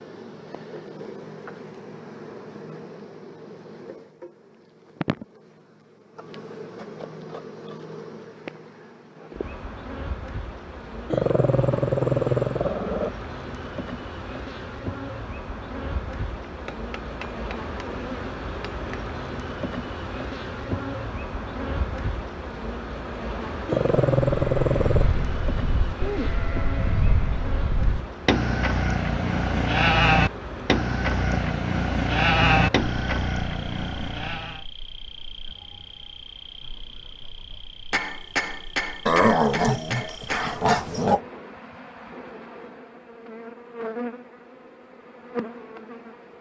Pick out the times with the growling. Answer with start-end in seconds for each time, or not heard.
11.1-13.1, 23.6-25.1, 39.0-41.2.